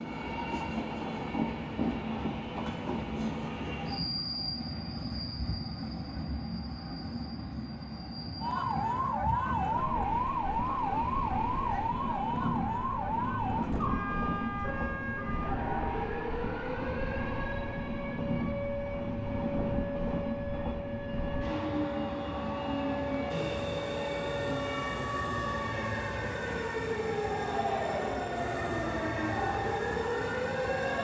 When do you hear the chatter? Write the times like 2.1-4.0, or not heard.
not heard.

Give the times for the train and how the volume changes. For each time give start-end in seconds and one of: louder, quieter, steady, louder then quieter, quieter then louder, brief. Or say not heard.
0.0-30.9 steady.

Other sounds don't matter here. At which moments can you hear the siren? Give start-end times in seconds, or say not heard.
8.4-30.9.